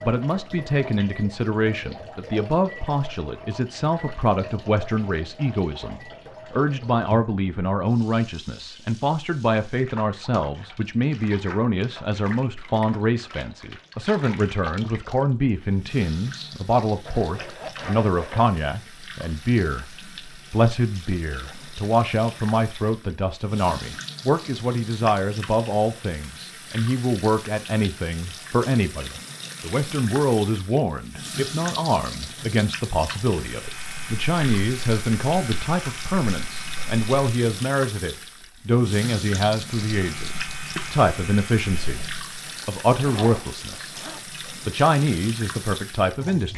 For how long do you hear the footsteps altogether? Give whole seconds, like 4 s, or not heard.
not heard.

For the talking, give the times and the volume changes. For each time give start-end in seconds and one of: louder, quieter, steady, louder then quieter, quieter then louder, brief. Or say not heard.
0.0-46.5 steady.